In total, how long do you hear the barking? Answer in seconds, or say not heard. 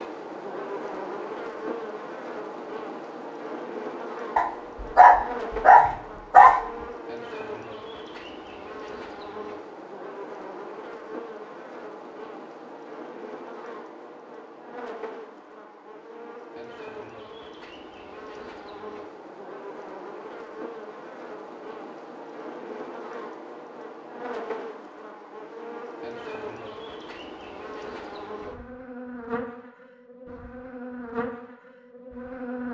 2 s.